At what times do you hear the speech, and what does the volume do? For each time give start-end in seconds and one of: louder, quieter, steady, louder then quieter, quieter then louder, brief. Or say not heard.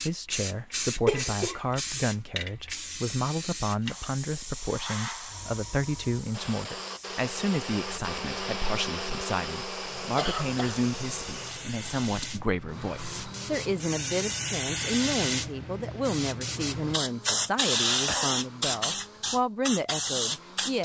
0.0-20.8 steady.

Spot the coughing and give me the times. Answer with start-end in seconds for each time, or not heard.
1.1-1.6, 9.8-10.8, 18.1-18.8.